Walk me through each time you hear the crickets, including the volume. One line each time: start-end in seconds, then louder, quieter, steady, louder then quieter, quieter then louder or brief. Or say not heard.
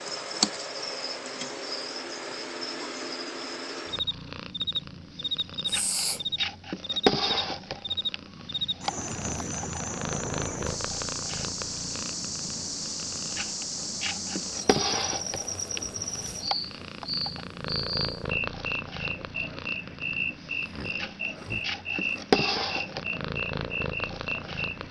0.0-24.8 steady.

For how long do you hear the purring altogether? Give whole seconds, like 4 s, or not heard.
21 s.